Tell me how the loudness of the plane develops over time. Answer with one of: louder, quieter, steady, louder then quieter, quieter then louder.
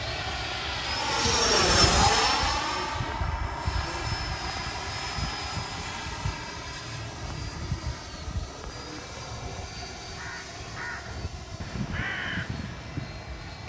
quieter.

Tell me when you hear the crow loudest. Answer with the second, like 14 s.
12 s.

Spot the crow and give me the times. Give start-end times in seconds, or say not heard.
8.4-13.6.